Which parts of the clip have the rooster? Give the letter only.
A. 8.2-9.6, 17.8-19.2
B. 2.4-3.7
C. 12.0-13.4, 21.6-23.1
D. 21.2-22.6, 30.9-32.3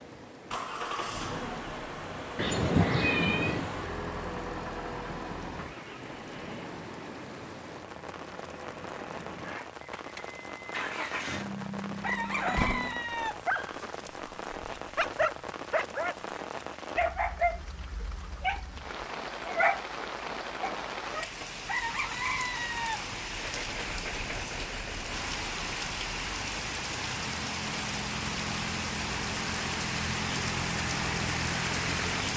C.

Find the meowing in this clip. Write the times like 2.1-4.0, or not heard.
2.4-3.7.